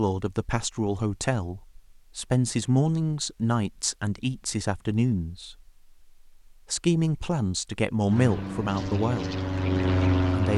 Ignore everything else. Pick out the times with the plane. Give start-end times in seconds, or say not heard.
8.1-10.5.